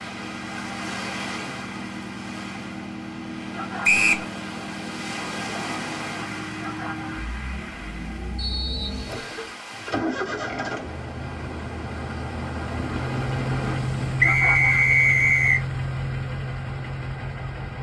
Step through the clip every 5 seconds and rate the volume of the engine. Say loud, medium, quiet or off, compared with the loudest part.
medium, medium, loud, loud.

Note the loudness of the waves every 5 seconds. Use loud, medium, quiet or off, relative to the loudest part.
loud, loud, loud, off.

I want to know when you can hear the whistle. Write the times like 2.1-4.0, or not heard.
3.8-4.2, 8.3-9.5, 14.2-15.6.